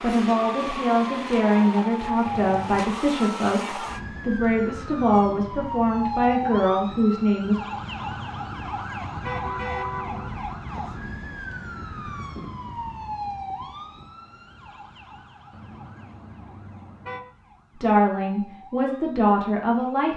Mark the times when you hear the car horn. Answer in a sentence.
You can hear the car horn from 2.2 to 2.9 s, from 7.7 to 10.4 s and from 15.5 to 17.2 s.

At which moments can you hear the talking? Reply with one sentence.
The talking can be heard from 0.0 to 7.6 s and from 17.8 to 20.1 s.